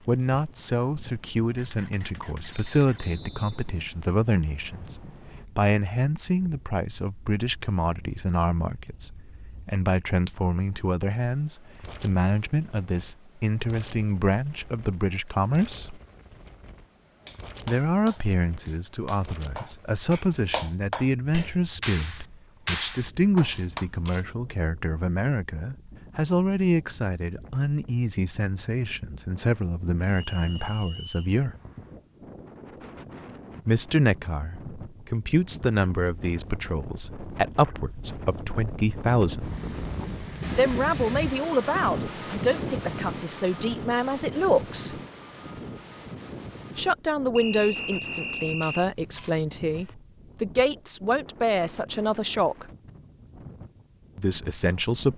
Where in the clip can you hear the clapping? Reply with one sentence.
You can hear the clapping from 17.2 to 23.9 s.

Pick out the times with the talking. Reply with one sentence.
The talking can be heard from 0.1 to 16.0 s, from 17.6 to 31.6 s, from 33.6 to 39.5 s, from 40.5 to 45.0 s, from 46.8 to 52.6 s and from 54.1 to 55.1 s.